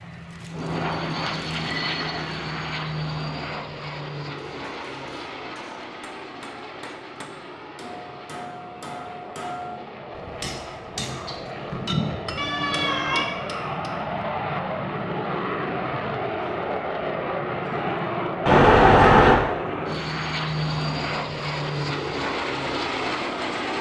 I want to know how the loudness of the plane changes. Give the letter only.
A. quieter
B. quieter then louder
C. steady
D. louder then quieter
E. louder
B.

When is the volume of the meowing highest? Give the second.
19 s.